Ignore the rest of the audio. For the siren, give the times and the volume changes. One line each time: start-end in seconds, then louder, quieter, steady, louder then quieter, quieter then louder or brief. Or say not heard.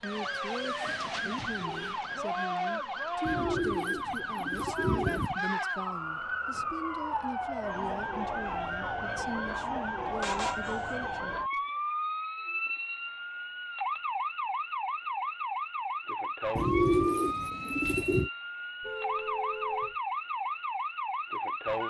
0.0-21.8 steady.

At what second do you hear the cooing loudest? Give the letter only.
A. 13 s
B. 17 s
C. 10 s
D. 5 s
B.